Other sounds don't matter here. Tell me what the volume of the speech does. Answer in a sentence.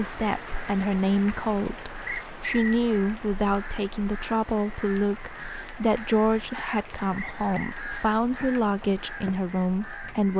The volume of the speech stays about the same.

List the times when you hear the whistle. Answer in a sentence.
The whistle can be heard from 2.0 to 2.8 s and from 7.2 to 7.8 s.